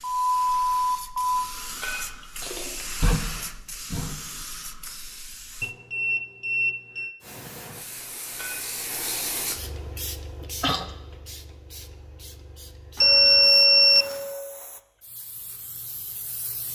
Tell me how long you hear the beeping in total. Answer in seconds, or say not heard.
4 s.